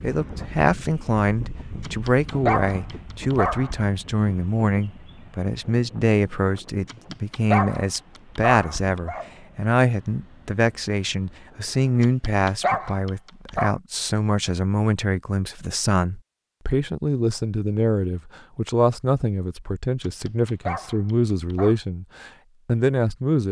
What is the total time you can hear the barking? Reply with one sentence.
The barking can be heard for 8 seconds in total.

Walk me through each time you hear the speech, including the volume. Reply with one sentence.
The speech can be heard from 0.0 to 23.4 s, at a steady volume.